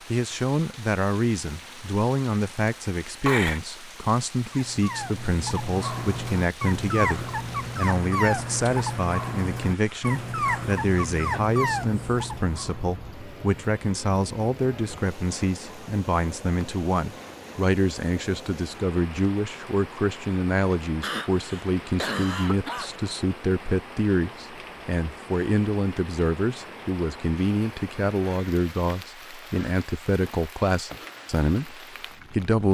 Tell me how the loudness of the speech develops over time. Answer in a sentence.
The volume of the speech stays about the same.